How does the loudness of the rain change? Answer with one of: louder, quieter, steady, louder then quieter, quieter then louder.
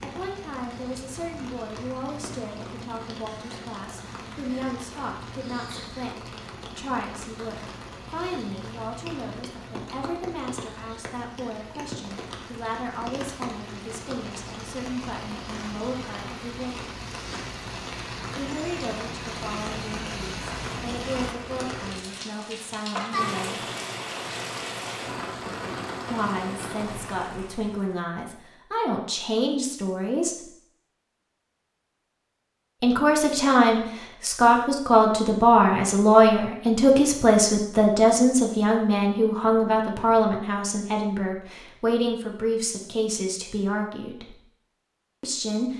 louder.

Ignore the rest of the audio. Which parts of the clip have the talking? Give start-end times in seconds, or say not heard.
0.0-16.8, 18.4-23.6, 26.1-30.5, 32.8-44.4, 45.2-45.7.